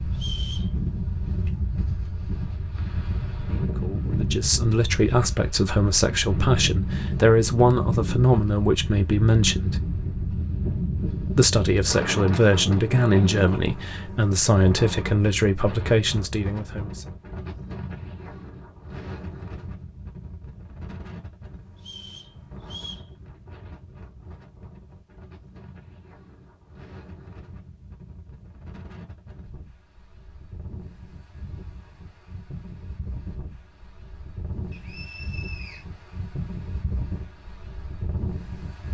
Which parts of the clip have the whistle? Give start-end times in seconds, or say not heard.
0.1-0.7, 21.8-23.1, 34.7-35.9.